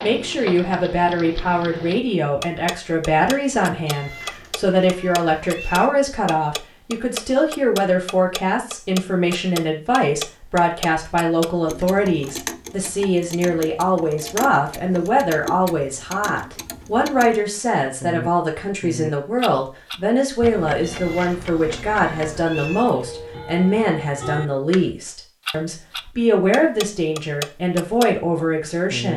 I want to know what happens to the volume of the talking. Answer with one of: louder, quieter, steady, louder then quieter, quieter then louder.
steady.